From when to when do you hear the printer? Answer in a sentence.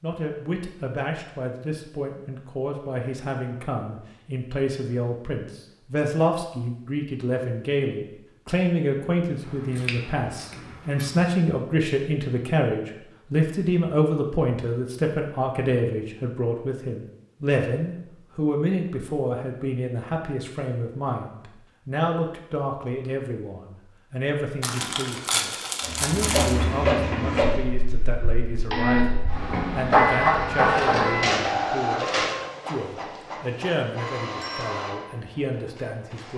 You can hear the printer from 25.9 to 36.3 s.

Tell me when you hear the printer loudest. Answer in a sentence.
The volume of the printer peaks at 30 seconds.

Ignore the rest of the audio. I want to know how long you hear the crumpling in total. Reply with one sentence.
The crumpling can be heard for 2 seconds in total.